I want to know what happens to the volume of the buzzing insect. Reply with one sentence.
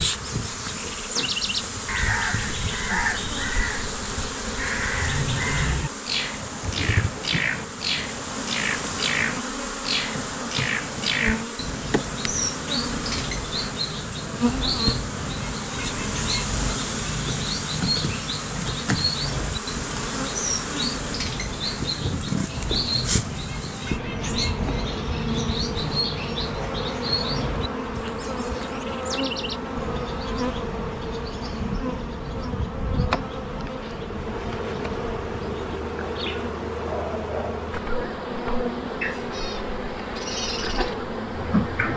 The loudness of the buzzing insect stays about the same.